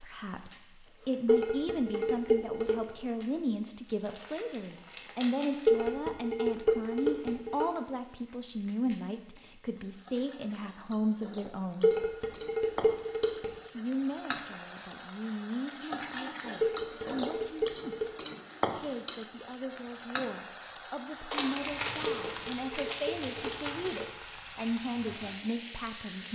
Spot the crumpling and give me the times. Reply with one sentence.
You can hear the crumpling from 3.9 to 5.8 s and from 21.3 to 24.1 s.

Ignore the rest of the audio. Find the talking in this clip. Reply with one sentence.
The talking can be heard from 0.0 to 11.9 s, from 13.8 to 18.1 s and from 18.8 to 26.3 s.